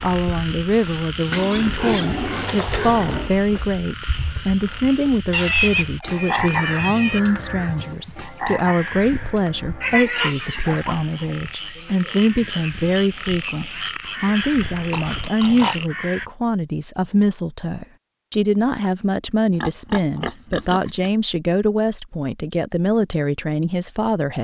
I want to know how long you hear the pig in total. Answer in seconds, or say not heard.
9 s.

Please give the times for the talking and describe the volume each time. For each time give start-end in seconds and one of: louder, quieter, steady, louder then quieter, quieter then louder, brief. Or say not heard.
0.0-24.3 steady.